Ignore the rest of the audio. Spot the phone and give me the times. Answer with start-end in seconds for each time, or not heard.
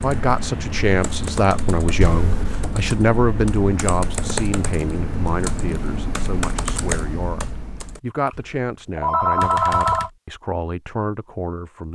2.0-2.7, 8.3-10.1.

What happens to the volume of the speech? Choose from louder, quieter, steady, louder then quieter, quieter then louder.
quieter.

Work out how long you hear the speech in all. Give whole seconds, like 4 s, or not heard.
12 s.